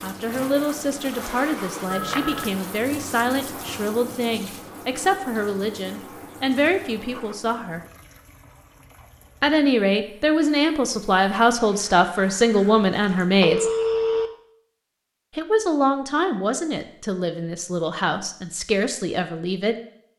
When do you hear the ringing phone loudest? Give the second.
14 s.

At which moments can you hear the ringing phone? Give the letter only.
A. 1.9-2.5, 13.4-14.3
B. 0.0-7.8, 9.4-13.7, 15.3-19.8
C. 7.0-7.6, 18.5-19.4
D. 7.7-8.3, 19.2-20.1
A.